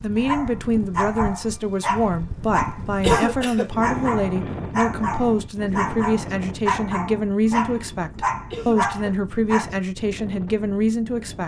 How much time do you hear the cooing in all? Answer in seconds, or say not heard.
not heard.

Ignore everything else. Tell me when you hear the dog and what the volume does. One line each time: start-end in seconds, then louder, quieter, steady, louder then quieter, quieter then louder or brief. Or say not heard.
0.1-9.7 steady.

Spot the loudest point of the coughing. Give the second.
3 s.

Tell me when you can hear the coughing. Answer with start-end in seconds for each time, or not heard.
3.0-3.7, 8.5-9.2.